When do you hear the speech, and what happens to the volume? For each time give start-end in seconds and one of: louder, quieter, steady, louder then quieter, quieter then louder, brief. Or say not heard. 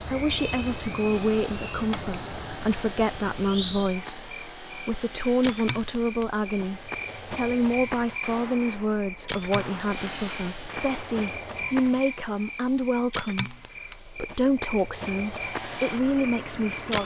0.0-16.9 steady.